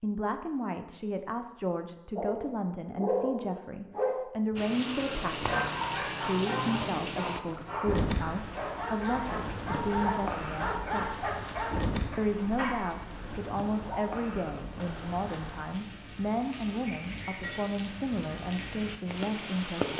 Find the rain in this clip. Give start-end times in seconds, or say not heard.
4.5-19.9.